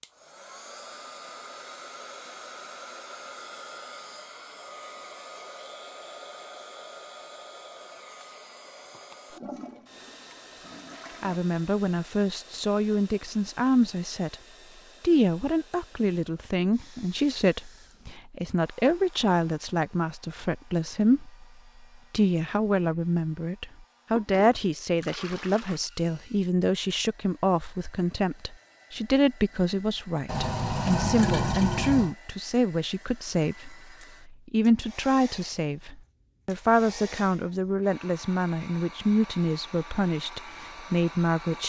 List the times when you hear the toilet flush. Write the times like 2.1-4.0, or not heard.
9.3-11.4, 24.1-25.8, 30.2-32.1.